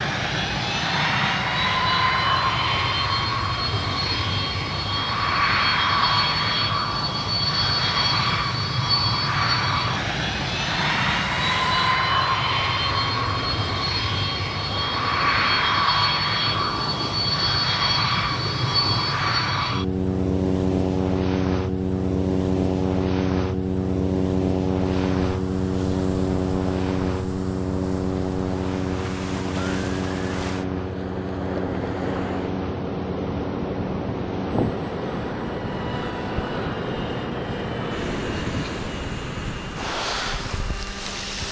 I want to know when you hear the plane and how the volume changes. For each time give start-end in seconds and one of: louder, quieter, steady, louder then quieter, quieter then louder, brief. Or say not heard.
0.0-41.4 quieter.